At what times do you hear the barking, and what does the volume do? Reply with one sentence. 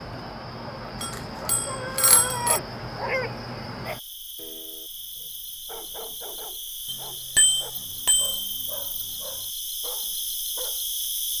The barking can be heard from 0.6 to 10.8 s, getting quieter.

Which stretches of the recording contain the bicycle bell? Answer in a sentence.
The bicycle bell can be heard from 1.0 to 2.6 s and from 6.8 to 8.4 s.